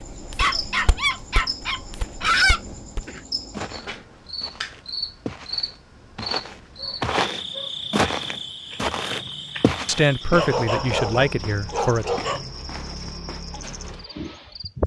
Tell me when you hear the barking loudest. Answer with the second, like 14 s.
2 s.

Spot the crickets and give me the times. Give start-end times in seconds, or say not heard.
0.0-14.8.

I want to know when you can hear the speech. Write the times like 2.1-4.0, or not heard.
9.8-12.1.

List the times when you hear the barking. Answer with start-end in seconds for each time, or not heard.
0.3-2.6, 6.8-7.9, 10.3-12.4.